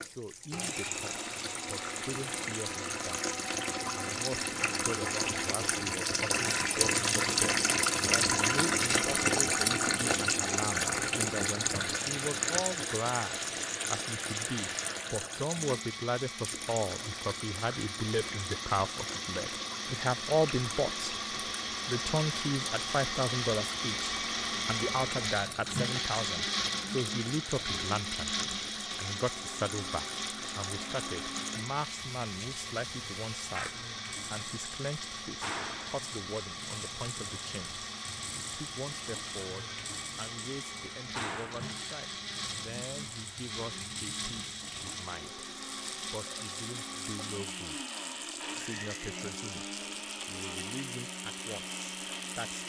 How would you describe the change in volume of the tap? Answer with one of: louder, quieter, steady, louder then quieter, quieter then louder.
quieter.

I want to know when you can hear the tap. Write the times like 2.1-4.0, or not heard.
0.0-52.6.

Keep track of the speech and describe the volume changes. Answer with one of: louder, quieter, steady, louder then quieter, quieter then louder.
louder then quieter.